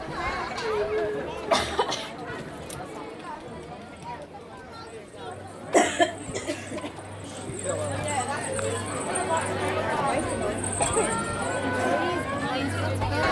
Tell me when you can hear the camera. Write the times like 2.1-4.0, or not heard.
not heard.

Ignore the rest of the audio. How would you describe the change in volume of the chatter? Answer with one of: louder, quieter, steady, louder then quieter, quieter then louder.
quieter then louder.